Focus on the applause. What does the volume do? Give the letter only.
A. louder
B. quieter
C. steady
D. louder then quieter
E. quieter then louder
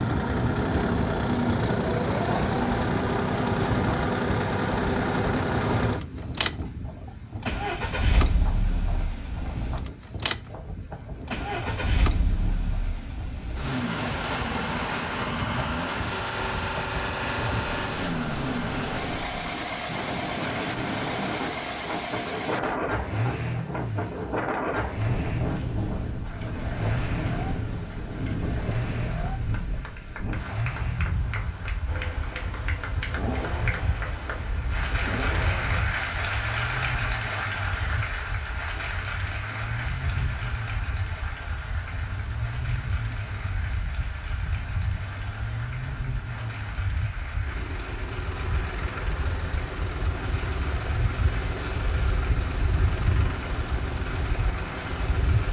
D.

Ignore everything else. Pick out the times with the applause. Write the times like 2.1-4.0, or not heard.
26.2-55.4.